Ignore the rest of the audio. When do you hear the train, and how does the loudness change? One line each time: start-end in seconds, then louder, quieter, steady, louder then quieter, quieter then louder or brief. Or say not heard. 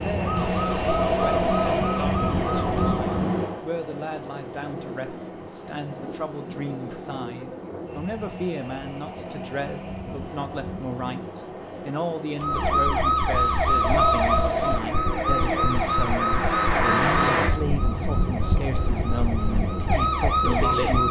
0.0-21.0 quieter.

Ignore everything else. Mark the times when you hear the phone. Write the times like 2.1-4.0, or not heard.
0.3-1.8, 13.3-14.8.